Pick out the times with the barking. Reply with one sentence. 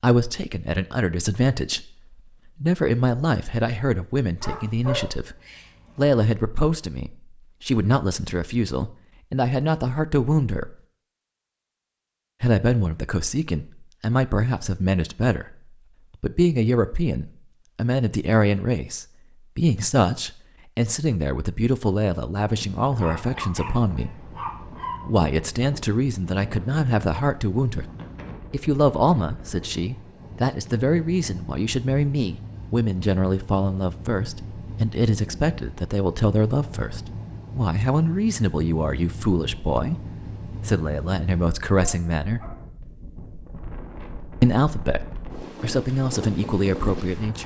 You can hear the barking from 4.4 to 6.2 s, from 22.9 to 25.0 s and from 41.8 to 42.6 s.